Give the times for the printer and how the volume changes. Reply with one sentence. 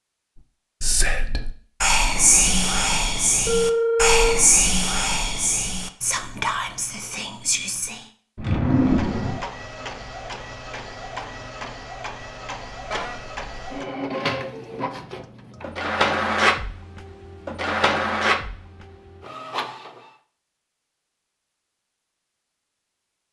The printer can be heard from 8.6 to 20.1 s, getting louder.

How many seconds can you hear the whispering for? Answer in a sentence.
You can hear the whispering for 7 seconds altogether.